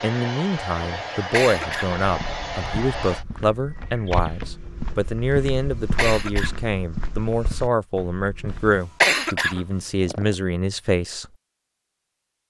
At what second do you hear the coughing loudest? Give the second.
9 s.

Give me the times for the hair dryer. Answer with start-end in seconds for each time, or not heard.
0.0-3.2.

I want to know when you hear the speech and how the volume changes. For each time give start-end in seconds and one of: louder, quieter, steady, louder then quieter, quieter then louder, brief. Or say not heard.
0.0-11.2 steady.